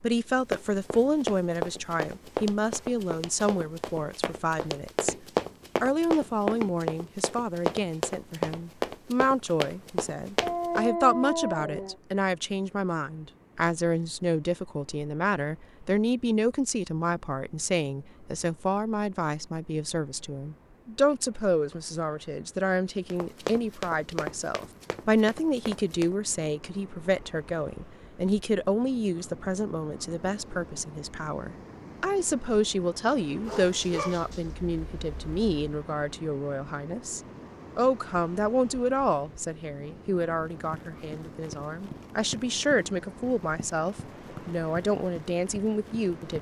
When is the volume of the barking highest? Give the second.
11 s.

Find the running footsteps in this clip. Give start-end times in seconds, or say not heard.
0.5-10.9, 23.1-26.1, 40.3-46.3.